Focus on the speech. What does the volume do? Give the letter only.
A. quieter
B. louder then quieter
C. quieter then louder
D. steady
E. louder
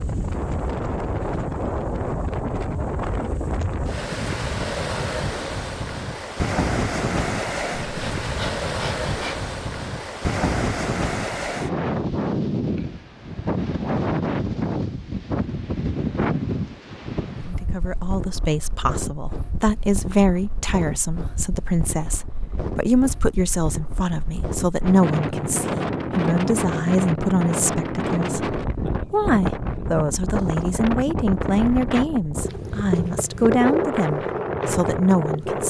D.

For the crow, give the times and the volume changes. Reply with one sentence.
You can't hear the crow here.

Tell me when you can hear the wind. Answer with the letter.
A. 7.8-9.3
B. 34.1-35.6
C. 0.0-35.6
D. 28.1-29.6
C.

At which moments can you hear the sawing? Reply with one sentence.
You can hear the sawing from 7.8 to 9.3 s.